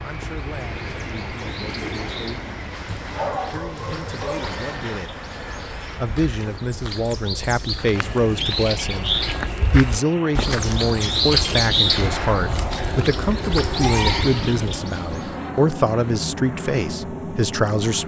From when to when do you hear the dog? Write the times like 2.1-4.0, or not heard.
3.0-4.5.